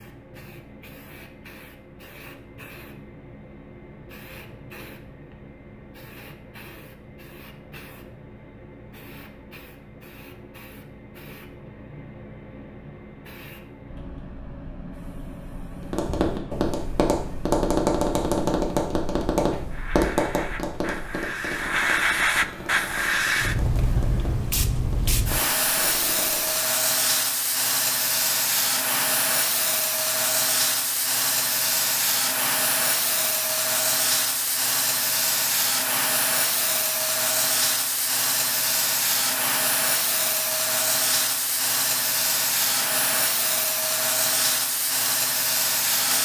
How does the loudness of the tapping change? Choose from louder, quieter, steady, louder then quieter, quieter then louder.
quieter.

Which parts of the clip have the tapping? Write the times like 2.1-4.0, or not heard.
15.8-26.6.